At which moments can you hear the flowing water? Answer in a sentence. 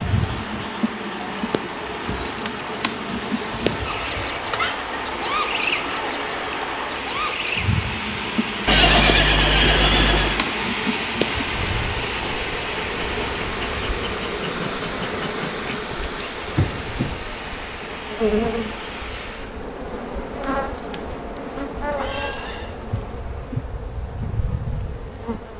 The flowing water can be heard from 0.0 to 19.6 s.